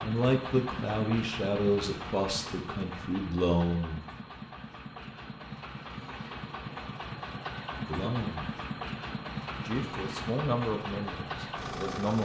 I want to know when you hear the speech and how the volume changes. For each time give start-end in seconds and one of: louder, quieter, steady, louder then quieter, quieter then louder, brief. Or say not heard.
0.0-4.0 quieter then louder
7.8-8.6 brief
9.6-12.2 brief.